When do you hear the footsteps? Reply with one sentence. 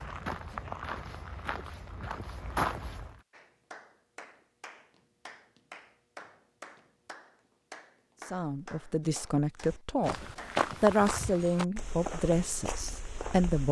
The footsteps can be heard from 0.0 to 3.2 s and from 9.6 to 13.6 s.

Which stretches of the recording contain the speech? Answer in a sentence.
You can hear the speech from 8.3 to 13.6 s.